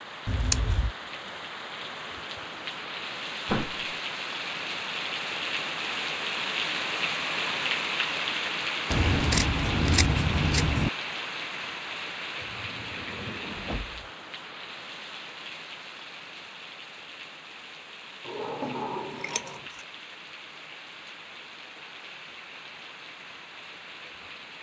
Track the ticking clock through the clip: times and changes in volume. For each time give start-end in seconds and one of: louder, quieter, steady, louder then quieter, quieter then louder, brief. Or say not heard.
not heard.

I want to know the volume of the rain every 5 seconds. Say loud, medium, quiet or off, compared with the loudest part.
medium, loud, medium, quiet, quiet.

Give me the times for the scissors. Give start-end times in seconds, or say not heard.
0.2-0.9, 8.9-10.9, 19.2-19.8.